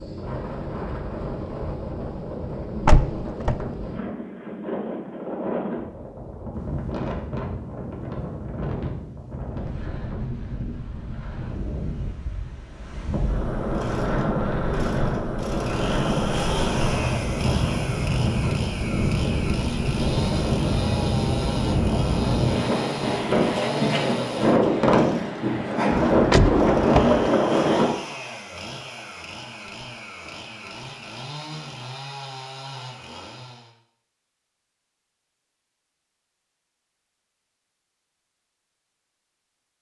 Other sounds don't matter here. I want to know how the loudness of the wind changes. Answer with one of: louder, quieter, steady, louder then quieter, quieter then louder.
louder.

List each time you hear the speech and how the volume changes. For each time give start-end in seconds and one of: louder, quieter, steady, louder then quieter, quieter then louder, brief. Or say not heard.
not heard.